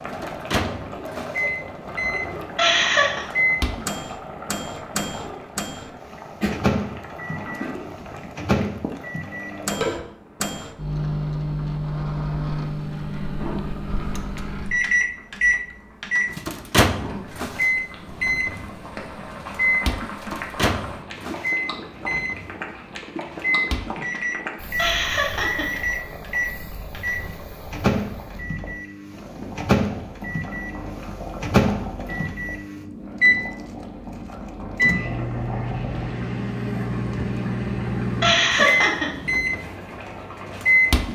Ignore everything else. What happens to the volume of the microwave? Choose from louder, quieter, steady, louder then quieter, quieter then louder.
steady.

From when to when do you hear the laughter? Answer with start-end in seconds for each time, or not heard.
2.5-3.2, 24.8-25.7, 38.2-39.1.